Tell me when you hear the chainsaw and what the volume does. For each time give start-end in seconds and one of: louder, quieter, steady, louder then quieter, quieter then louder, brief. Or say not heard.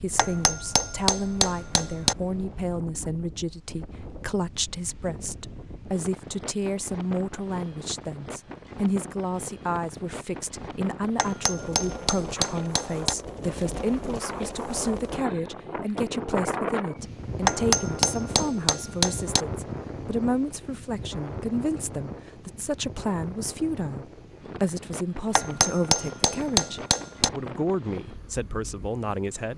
not heard.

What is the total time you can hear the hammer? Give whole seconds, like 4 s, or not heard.
8 s.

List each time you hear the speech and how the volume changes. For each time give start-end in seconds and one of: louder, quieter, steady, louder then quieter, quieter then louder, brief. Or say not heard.
0.0-29.5 steady.